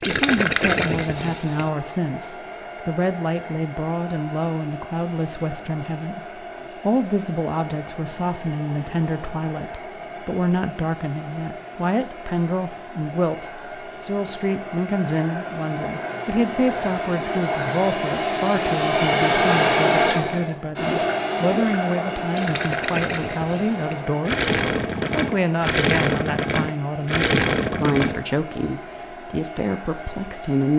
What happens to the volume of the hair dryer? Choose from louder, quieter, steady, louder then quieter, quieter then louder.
louder then quieter.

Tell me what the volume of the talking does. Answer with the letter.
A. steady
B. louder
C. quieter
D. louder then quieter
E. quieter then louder
A.